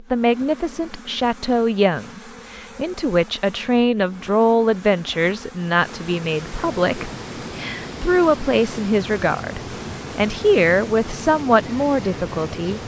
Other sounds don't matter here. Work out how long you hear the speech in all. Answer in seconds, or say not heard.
13 s.